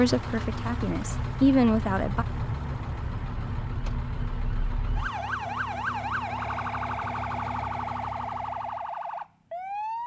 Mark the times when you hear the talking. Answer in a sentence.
The talking can be heard from 0.0 to 2.2 s.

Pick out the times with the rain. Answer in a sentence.
You can't hear the rain here.